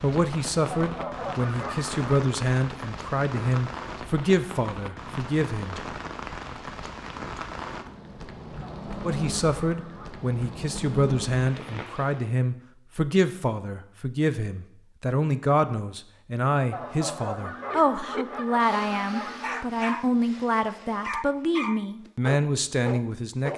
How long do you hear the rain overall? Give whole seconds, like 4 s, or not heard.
12 s.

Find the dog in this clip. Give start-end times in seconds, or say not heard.
17.6-23.5.